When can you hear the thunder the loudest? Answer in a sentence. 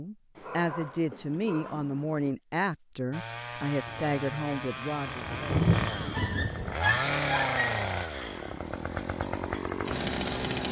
The loudest moment of the thunder is at 6 seconds.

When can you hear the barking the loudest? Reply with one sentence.
The loudest moment of the barking is at 7 seconds.